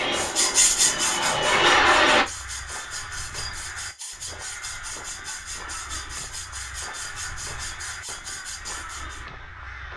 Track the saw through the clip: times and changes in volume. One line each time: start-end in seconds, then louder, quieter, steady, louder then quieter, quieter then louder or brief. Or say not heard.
0.0-9.2 quieter.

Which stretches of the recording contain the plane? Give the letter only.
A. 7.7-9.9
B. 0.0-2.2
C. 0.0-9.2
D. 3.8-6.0
B.